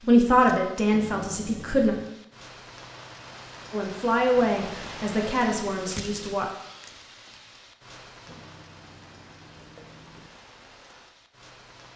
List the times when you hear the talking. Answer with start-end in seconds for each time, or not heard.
0.1-1.9, 3.7-6.5.